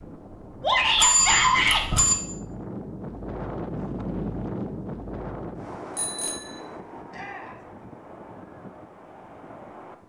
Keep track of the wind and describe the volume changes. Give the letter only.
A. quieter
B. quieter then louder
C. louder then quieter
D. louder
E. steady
C.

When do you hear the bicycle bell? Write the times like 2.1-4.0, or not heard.
0.9-2.1, 6.0-6.6.